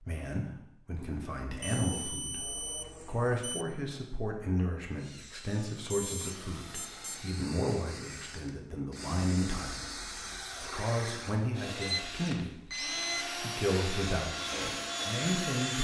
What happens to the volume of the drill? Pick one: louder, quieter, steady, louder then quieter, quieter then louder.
louder.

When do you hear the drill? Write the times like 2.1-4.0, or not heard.
5.0-15.8.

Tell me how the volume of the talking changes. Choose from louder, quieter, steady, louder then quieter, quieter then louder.
steady.